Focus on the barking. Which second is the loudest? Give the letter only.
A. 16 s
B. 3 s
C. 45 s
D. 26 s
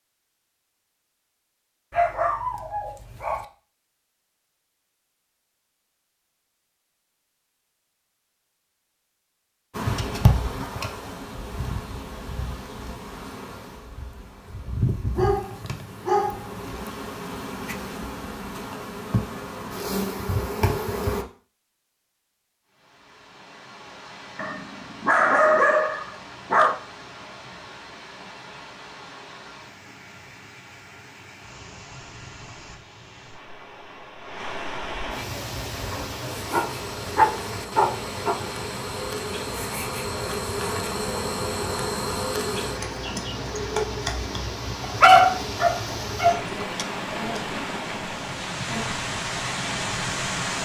C.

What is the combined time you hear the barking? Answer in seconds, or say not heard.
9 s.